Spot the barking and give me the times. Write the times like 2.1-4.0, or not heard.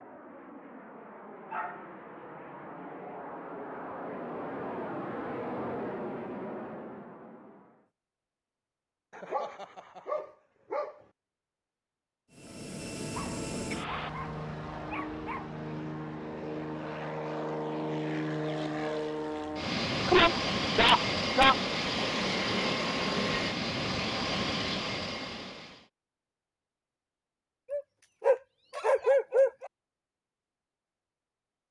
1.5-2.4, 9.1-10.9, 13.2-15.5, 20.1-21.6, 27.7-29.7.